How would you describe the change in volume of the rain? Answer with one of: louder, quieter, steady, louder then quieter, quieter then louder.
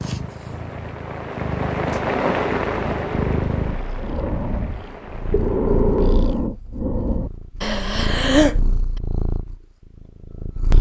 louder then quieter.